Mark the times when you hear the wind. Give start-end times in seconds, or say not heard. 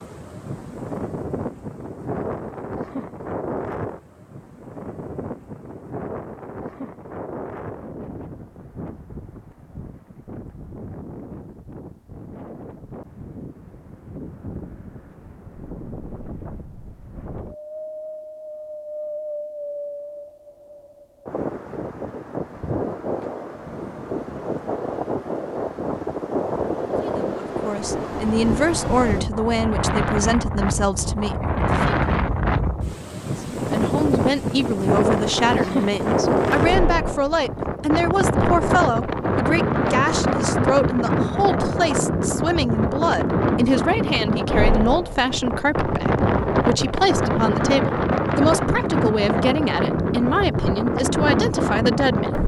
0.0-52.4.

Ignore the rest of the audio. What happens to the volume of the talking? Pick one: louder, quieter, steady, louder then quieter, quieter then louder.
steady.